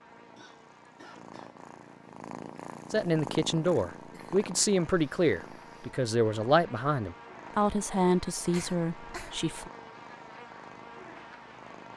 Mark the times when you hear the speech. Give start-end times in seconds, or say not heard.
2.9-9.7.